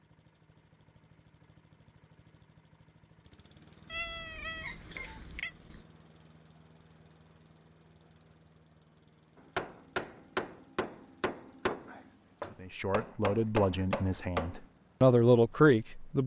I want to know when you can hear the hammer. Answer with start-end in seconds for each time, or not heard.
9.3-14.6.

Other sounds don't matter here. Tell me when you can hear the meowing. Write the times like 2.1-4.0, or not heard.
3.9-5.8.